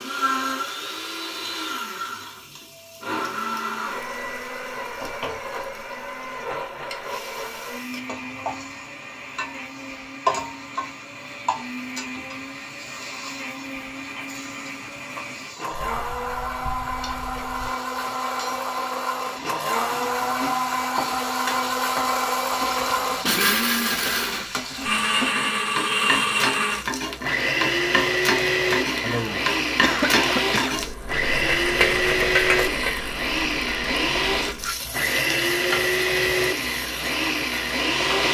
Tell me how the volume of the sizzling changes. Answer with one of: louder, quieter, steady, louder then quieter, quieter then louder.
louder.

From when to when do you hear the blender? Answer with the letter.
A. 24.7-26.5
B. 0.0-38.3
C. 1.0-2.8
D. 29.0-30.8
B.